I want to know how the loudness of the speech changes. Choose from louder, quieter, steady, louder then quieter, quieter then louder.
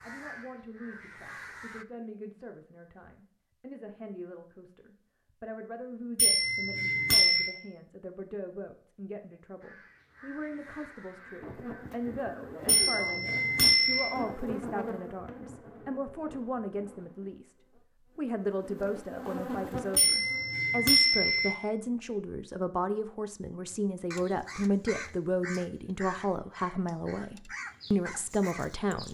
louder.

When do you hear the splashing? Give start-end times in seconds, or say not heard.
not heard.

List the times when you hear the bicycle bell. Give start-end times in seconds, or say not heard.
6.2-7.5, 12.7-14.2, 19.9-21.6.